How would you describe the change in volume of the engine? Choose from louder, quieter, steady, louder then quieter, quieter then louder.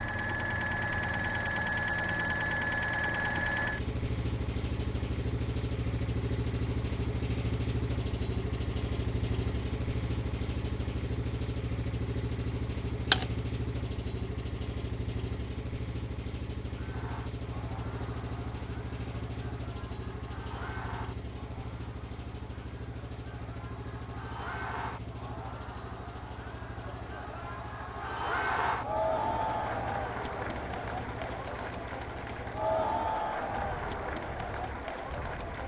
quieter.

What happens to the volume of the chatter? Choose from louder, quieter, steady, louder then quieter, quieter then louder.
louder.